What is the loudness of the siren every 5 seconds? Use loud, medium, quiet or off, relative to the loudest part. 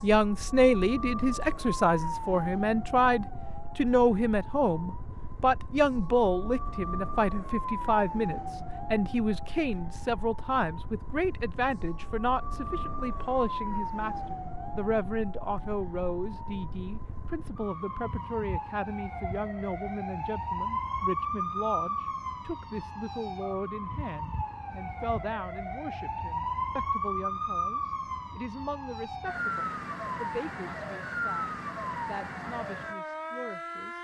medium, medium, medium, medium, loud, loud, loud.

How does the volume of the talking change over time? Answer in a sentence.
The loudness of the talking goes down.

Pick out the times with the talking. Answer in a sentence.
You can hear the talking from 0.0 to 33.9 s.